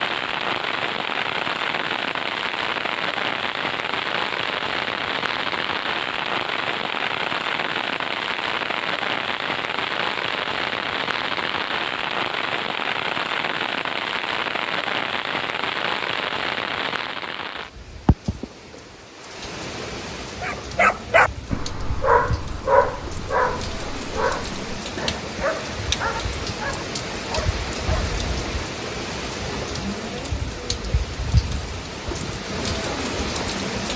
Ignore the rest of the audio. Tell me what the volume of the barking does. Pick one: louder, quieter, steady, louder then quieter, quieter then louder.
quieter.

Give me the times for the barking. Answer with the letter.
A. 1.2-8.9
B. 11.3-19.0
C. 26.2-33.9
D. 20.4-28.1
D.